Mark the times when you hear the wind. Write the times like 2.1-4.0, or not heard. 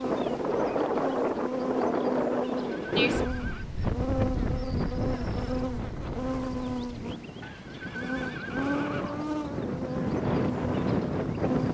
0.0-11.7.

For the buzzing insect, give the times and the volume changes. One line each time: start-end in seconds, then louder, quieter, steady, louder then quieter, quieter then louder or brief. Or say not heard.
0.0-11.7 steady.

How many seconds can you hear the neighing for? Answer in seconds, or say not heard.
3 s.